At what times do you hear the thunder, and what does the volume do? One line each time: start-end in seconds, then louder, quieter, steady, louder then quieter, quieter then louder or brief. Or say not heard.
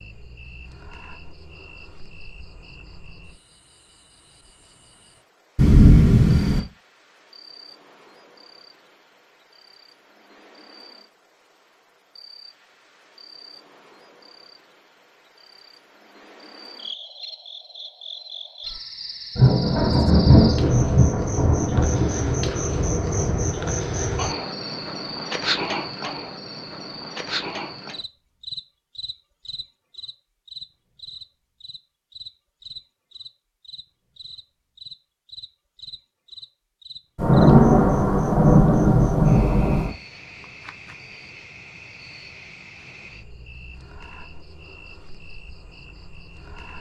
5.5-6.6 brief
19.4-23.4 quieter
37.1-39.9 brief.